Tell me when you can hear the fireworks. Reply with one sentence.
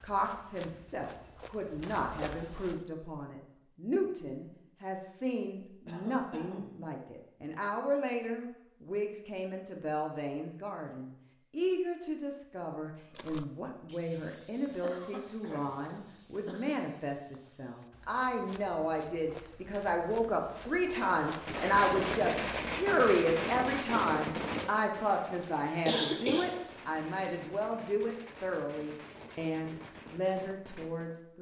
The fireworks can be heard from 20.8 to 31.2 s.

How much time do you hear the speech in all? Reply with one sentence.
The speech can be heard for 31 seconds in total.